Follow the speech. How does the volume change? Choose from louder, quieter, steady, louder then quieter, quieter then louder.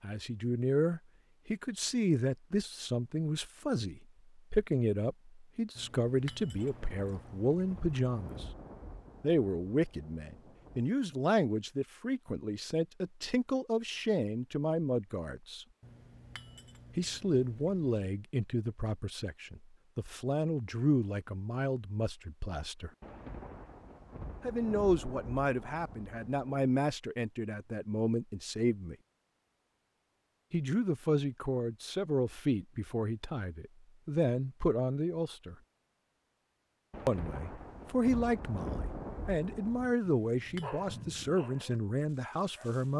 steady.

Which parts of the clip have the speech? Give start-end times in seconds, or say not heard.
0.0-8.4, 9.2-15.7, 16.9-22.9, 24.4-28.9, 30.5-35.5, 37.0-42.9.